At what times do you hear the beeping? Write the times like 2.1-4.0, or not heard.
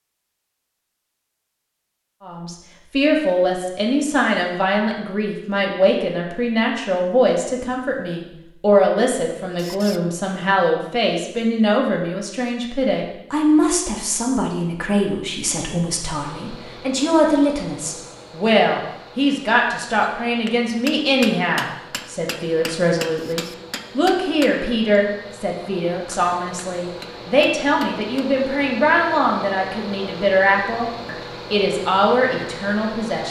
not heard.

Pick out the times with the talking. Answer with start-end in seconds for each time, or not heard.
2.2-33.2.